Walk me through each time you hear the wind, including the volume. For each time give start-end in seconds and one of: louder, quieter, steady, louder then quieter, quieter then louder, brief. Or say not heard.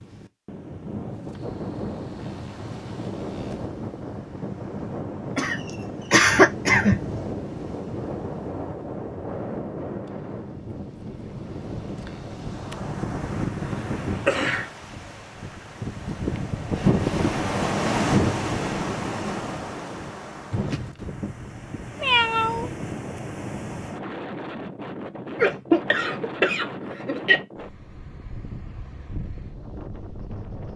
0.0-30.7 louder then quieter.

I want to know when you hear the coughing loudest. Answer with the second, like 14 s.
6 s.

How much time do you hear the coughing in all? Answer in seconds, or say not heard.
4 s.